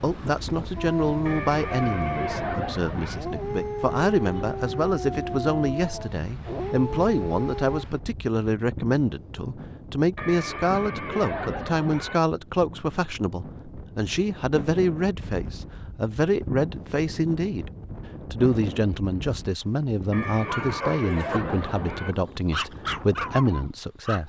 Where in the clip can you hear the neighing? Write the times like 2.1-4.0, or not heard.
1.2-3.2, 10.2-12.2, 20.1-22.1.